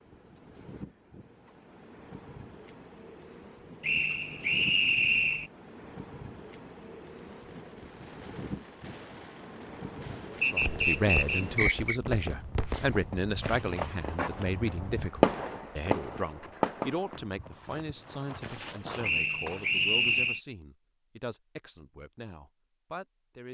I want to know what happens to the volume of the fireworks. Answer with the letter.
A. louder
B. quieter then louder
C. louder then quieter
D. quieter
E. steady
A.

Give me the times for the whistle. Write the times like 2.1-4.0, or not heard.
3.8-5.5, 10.4-12.0, 19.0-20.4.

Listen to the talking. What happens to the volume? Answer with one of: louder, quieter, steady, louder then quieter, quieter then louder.
quieter.